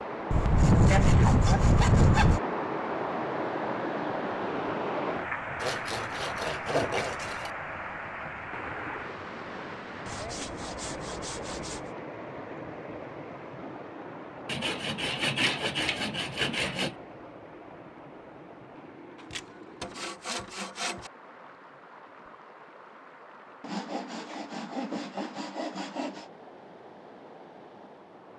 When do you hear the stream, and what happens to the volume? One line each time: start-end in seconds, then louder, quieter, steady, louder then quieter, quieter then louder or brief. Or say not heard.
0.0-28.3 quieter.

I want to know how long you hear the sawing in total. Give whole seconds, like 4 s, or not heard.
13 s.